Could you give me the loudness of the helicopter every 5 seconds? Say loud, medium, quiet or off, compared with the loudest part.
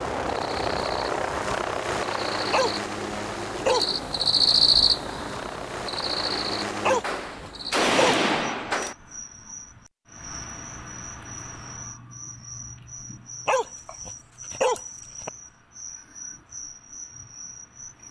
loud, loud, off, off.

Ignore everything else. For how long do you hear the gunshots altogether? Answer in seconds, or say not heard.
2 s.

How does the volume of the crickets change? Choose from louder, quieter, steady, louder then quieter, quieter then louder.
louder then quieter.